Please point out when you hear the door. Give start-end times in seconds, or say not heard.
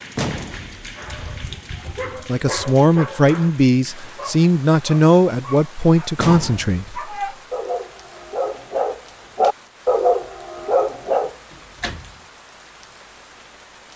0.1-0.9, 6.2-6.8, 11.5-12.2.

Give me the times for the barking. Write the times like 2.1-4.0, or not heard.
0.9-11.3.